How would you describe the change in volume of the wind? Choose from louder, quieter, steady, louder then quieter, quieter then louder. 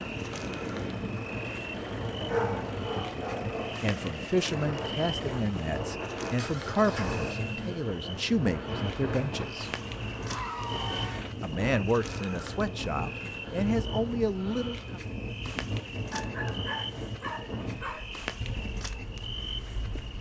steady.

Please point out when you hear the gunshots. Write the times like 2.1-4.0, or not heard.
not heard.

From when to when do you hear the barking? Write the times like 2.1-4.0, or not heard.
2.2-3.8, 16.1-18.1.